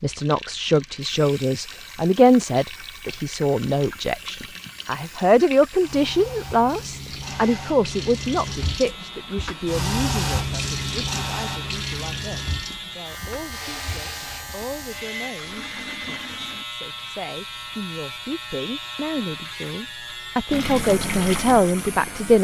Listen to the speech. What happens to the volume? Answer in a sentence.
The volume of the speech goes down, then up.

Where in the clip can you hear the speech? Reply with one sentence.
The speech can be heard from 0.0 to 22.3 s.